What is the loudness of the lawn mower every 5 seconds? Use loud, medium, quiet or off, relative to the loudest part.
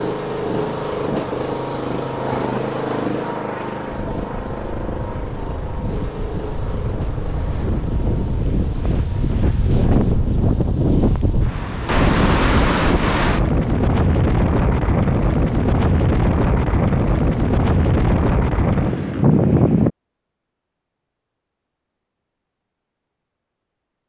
loud, medium, quiet, off, off.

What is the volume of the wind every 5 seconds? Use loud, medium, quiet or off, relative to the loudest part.
quiet, medium, loud, loud, off.